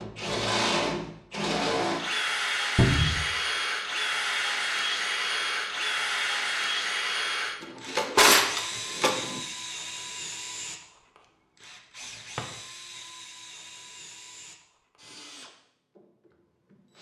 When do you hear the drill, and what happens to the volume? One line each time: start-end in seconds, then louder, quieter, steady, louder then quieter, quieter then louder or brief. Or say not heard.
0.0-16.9 quieter.